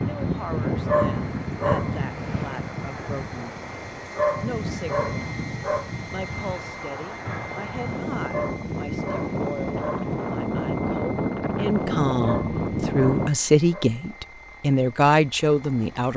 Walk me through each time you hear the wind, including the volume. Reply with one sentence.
The wind can be heard from 0.0 to 13.3 s, getting quieter then louder.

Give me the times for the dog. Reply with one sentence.
The dog can be heard from 0.8 to 2.0 s, from 4.2 to 5.9 s, from 8.3 to 10.2 s and from 12.2 to 13.9 s.